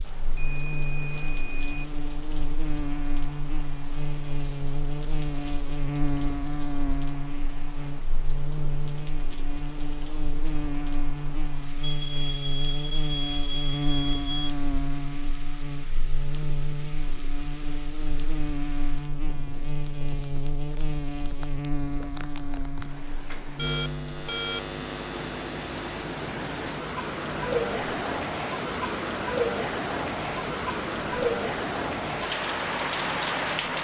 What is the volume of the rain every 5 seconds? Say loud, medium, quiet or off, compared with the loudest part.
quiet, quiet, quiet, quiet, quiet, loud, loud.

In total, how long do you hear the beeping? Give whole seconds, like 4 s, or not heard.
5 s.